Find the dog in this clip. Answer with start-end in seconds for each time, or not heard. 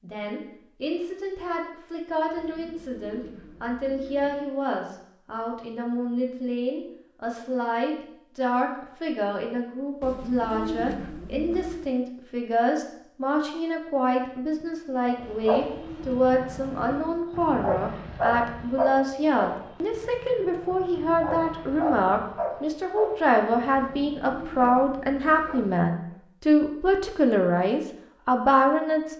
15.1-26.1.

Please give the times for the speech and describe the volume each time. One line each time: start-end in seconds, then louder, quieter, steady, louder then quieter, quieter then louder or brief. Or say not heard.
0.0-29.1 louder.